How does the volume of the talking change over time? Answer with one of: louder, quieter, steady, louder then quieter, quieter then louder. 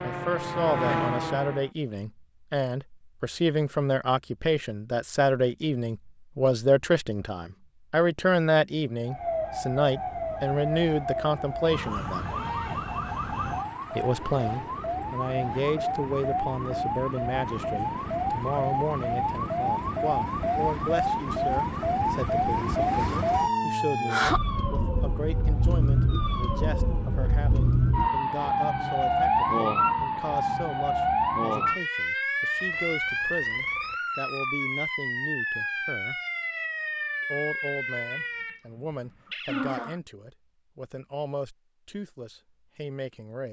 quieter.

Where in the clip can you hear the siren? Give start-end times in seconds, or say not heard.
0.0-1.7, 9.1-40.0.